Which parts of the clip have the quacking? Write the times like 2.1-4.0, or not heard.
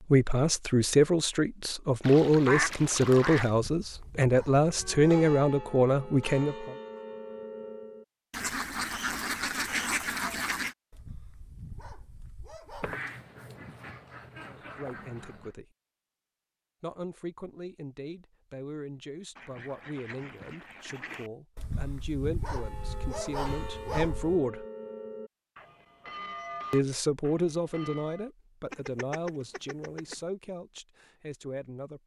2.0-3.5, 8.3-10.8, 12.8-15.5, 19.4-21.3, 28.7-30.1.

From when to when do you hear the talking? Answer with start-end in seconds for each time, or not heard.
0.1-6.8, 14.4-15.7, 16.8-24.6, 26.7-32.0.